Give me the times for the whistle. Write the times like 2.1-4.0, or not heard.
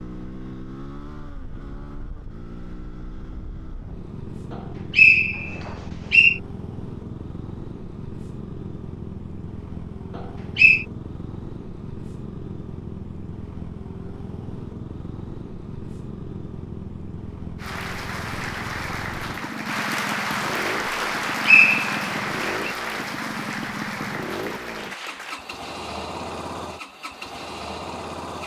4.5-6.4, 10.2-10.8, 21.4-22.7.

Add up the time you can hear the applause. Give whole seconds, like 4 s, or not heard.
8 s.